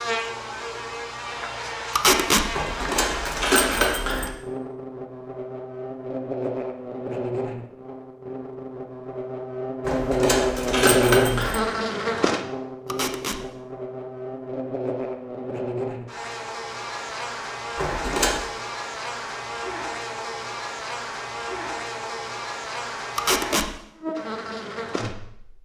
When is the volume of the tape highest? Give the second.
2 s.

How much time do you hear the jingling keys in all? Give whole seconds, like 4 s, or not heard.
4 s.